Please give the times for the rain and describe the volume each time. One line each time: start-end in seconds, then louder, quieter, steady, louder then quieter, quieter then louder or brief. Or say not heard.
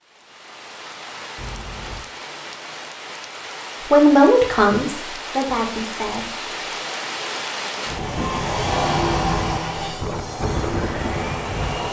0.0-11.8 louder.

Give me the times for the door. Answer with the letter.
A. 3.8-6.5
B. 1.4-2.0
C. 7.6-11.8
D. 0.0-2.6
B.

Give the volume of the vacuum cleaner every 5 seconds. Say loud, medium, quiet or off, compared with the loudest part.
off, loud, medium.